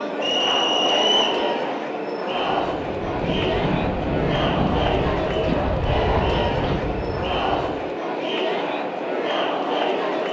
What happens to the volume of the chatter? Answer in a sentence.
The loudness of the chatter stays about the same.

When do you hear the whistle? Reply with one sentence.
You can hear the whistle from 0.2 to 1.4 s.